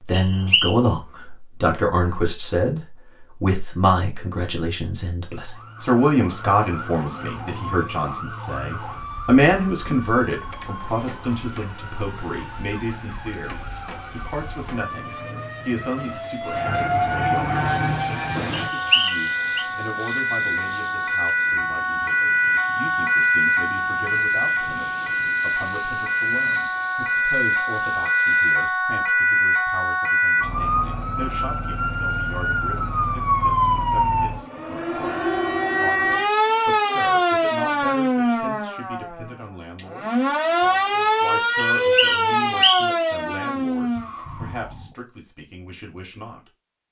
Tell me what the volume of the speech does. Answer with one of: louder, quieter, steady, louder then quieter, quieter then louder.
quieter.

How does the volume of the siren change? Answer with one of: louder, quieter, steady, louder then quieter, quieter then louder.
louder.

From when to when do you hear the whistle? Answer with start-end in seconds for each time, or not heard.
0.1-0.8, 18.5-19.6, 41.8-42.9.